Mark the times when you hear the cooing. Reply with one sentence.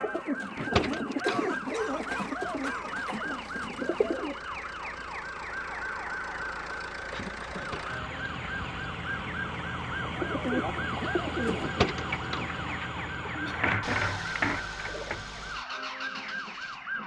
You can hear the cooing from 0.0 to 4.4 s and from 10.0 to 15.2 s.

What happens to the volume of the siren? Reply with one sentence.
The volume of the siren stays about the same.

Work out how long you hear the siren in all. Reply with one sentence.
The siren can be heard for 17 seconds in total.